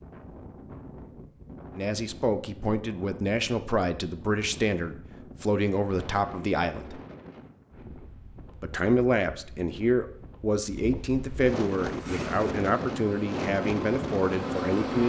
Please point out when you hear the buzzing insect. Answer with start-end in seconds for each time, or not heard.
11.8-15.0.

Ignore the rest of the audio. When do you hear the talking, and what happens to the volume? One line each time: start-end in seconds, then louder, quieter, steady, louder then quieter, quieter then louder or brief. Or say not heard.
1.8-7.0 steady
8.6-15.0 steady.